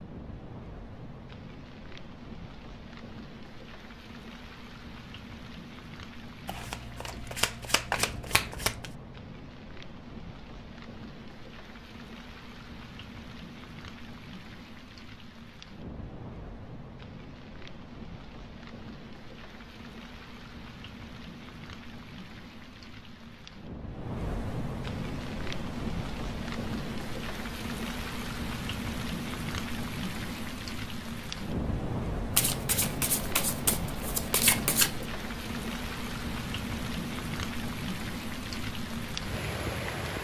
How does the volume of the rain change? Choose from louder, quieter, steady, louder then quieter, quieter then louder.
louder.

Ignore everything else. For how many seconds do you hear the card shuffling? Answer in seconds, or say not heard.
5 s.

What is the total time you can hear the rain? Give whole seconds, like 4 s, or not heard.
40 s.